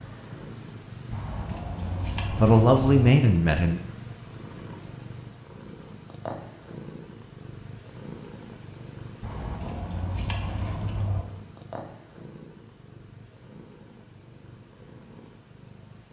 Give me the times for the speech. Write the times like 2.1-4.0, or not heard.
2.3-3.8.